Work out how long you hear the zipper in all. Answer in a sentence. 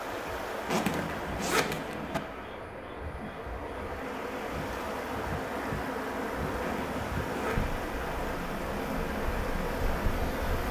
You can hear the zipper for 3 seconds altogether.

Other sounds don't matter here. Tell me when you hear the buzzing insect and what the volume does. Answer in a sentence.
The buzzing insect can be heard from 0.0 to 10.6 s, getting louder.